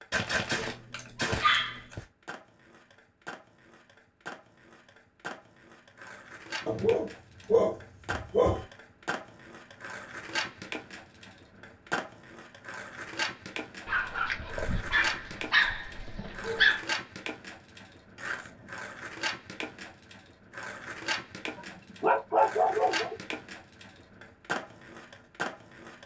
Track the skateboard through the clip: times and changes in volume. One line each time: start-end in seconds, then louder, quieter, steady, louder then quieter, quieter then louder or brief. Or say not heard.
0.0-26.0 louder.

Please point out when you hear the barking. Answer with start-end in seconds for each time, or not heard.
0.1-2.0, 6.7-8.7, 13.8-16.8, 21.6-23.1.